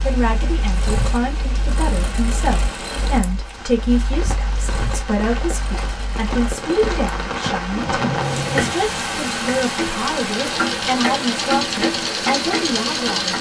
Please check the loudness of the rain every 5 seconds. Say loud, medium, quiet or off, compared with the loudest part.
medium, loud, loud.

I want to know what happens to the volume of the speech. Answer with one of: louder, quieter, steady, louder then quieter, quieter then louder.
steady.